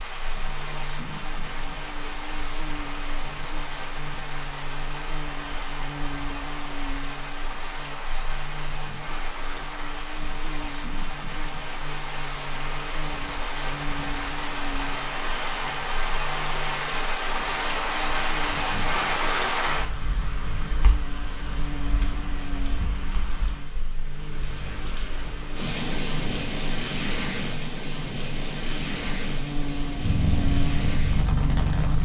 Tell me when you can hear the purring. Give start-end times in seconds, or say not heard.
30.0-32.0.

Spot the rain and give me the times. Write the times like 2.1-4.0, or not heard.
0.0-32.0.